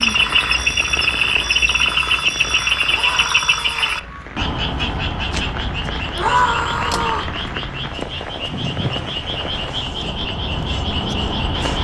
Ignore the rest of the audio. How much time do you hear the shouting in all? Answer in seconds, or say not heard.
2 s.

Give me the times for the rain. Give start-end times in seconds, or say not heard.
0.0-11.7.